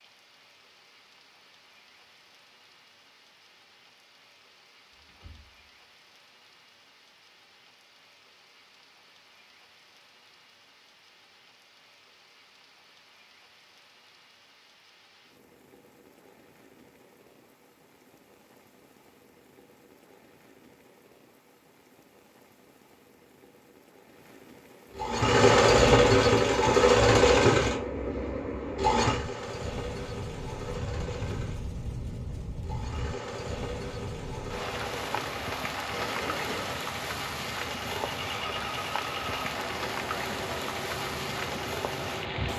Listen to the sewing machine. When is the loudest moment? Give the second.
26 s.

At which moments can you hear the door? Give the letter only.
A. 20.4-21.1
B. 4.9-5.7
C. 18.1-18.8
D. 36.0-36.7
B.